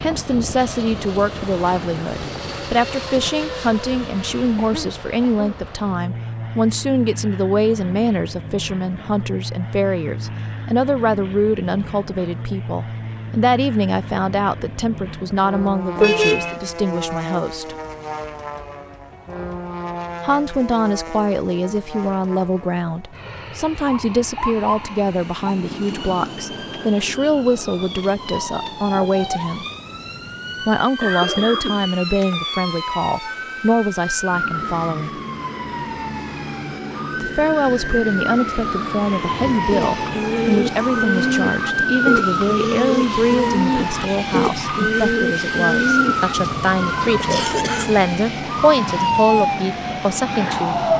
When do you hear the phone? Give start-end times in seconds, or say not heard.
not heard.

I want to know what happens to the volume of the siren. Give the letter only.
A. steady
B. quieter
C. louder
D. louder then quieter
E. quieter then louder
C.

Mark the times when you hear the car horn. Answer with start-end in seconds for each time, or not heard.
15.9-16.6.